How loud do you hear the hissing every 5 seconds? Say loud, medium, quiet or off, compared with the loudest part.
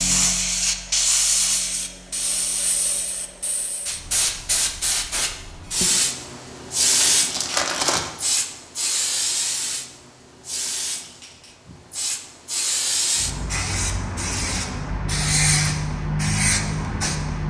loud, loud, medium, loud.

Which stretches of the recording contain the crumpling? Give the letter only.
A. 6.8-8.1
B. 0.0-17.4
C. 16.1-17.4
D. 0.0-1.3
A.